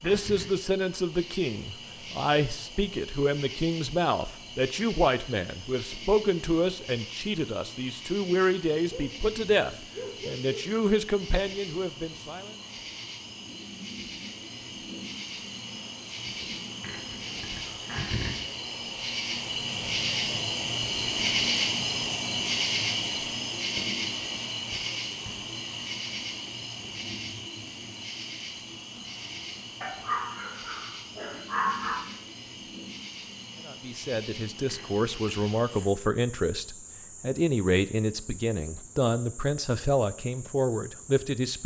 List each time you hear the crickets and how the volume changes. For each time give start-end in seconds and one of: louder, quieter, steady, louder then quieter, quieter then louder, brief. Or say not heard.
0.0-41.6 louder then quieter.